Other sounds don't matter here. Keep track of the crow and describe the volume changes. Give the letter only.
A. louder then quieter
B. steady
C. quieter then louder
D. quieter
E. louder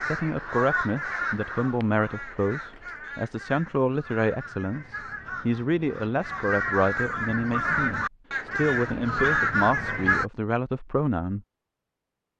C.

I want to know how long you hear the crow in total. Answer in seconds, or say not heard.
10 s.